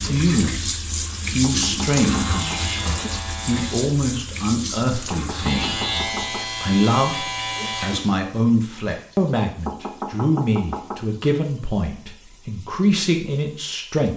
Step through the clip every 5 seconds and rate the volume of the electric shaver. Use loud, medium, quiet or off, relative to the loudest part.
medium, loud, off.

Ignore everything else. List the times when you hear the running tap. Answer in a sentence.
The running tap can be heard from 0.0 to 14.1 s.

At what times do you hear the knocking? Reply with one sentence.
You can hear the knocking from 1.4 to 2.6 s, from 5.1 to 6.5 s and from 9.7 to 11.0 s.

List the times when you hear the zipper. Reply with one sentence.
You can't hear the zipper here.